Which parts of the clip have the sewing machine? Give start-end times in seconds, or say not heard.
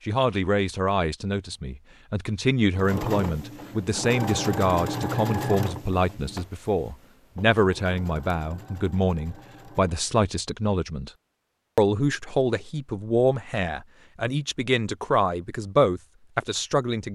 2.7-10.3.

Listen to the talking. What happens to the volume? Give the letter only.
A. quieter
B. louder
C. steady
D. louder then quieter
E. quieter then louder
C.